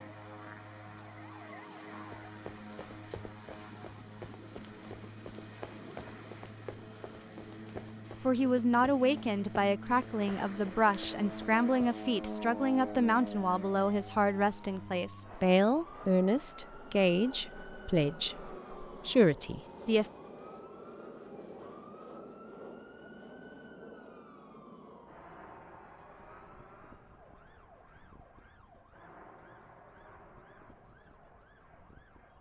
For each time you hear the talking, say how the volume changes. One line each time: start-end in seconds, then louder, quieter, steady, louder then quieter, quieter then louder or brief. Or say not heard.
8.2-20.1 steady.